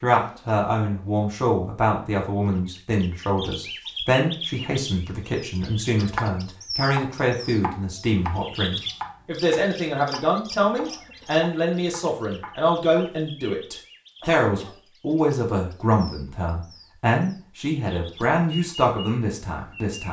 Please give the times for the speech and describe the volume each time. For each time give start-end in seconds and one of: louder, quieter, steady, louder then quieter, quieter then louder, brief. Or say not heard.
0.0-20.0 steady.